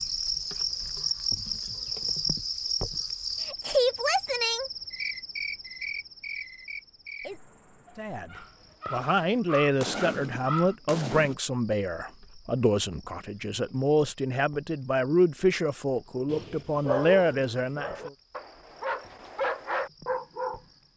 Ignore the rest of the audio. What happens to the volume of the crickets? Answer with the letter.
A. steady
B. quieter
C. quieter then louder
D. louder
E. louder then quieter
B.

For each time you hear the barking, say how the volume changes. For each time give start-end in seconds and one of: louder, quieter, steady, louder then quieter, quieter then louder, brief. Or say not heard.
7.8-10.8 brief
16.2-20.6 quieter then louder.